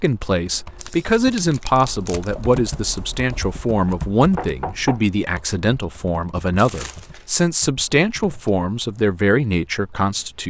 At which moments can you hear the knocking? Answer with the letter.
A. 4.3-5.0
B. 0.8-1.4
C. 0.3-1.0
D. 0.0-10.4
A.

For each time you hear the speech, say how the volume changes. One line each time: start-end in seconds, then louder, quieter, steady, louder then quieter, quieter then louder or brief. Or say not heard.
0.0-10.4 steady.